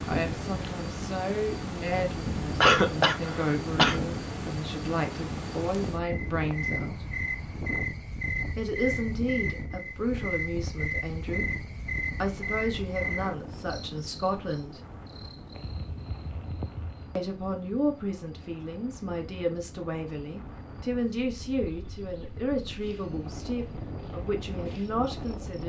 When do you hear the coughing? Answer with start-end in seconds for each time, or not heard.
2.6-4.0.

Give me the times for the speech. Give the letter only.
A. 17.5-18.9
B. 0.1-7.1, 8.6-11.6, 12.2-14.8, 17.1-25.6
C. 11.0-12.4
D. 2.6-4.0
B.